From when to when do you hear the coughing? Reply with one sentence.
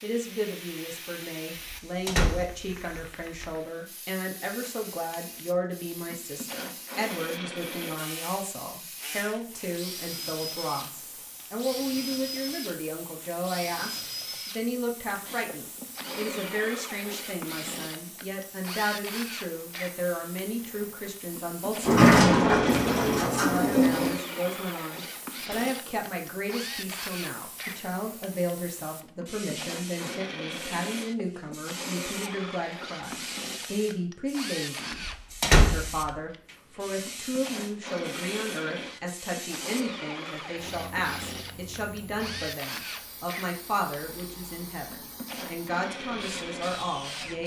You can't hear the coughing here.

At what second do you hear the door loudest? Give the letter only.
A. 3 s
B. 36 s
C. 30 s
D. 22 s
D.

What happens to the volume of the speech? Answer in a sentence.
The volume of the speech stays about the same.